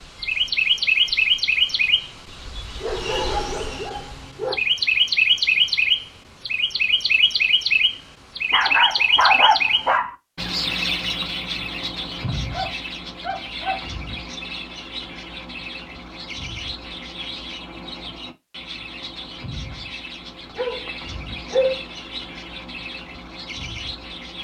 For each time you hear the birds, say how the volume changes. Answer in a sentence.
You can hear the birds from 0.0 to 24.4 s, getting quieter.